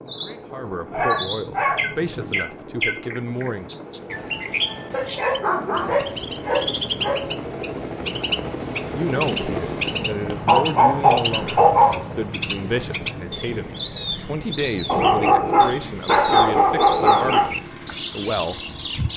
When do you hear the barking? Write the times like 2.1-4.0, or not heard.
0.9-2.4, 4.9-7.2, 10.4-12.0, 14.8-17.5.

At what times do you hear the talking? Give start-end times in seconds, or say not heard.
0.1-3.7, 8.9-18.6.